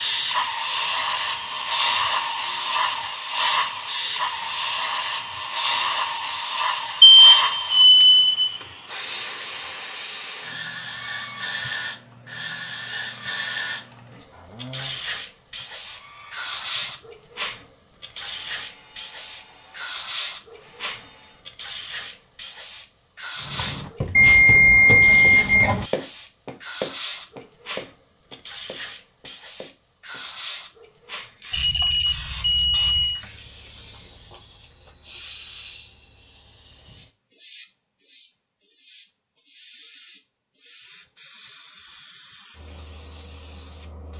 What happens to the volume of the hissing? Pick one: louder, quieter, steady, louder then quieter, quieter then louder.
quieter.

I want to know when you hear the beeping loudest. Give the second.
7 s.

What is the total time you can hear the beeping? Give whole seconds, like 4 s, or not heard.
5 s.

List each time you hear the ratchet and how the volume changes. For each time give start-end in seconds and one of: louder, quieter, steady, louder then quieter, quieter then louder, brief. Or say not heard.
not heard.